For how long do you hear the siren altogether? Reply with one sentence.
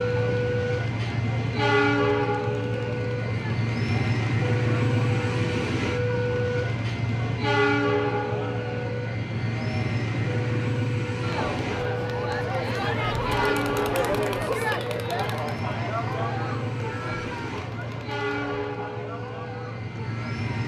You can't hear the siren here.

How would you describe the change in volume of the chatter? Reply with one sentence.
The loudness of the chatter goes up, then down.